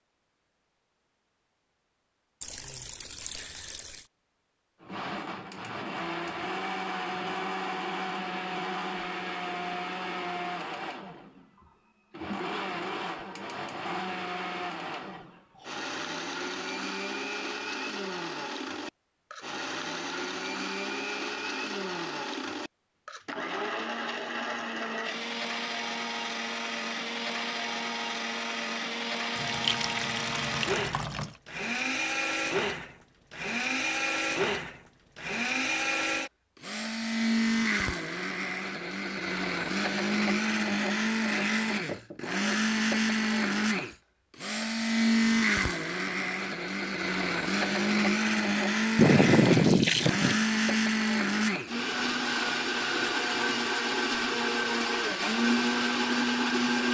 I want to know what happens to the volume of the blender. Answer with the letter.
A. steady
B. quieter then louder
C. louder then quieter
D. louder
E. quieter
D.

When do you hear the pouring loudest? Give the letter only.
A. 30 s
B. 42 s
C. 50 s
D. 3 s
C.